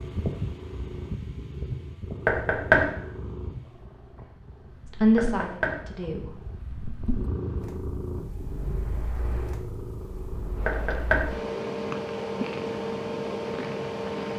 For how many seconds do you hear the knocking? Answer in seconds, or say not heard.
2 s.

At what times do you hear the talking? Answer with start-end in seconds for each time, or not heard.
4.9-6.3.